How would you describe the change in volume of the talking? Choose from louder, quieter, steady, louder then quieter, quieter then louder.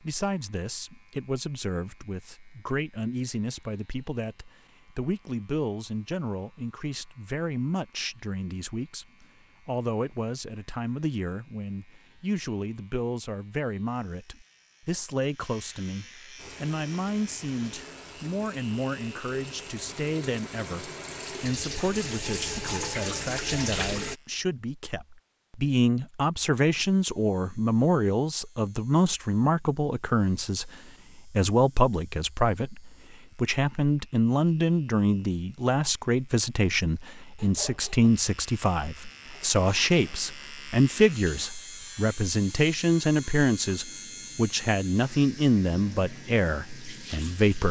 louder.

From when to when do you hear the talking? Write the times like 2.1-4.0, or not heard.
0.0-47.6.